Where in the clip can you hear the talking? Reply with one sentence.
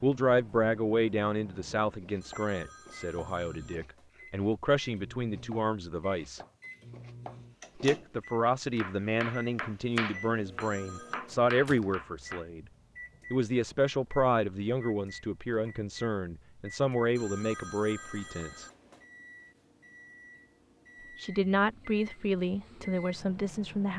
You can hear the talking from 0.0 to 6.4 s, from 7.8 to 12.7 s, from 13.3 to 18.6 s and from 21.1 to 23.9 s.